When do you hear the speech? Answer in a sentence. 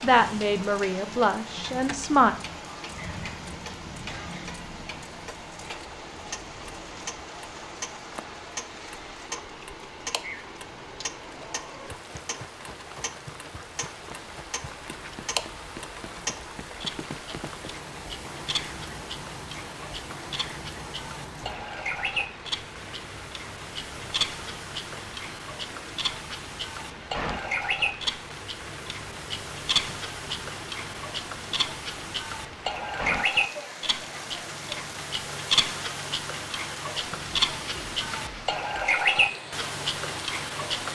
The speech can be heard from 0.0 to 2.4 s.